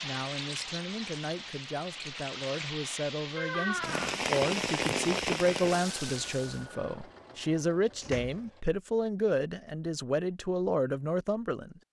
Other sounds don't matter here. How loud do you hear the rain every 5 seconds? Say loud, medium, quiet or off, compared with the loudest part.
loud, loud, off.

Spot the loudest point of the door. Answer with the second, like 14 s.
4 s.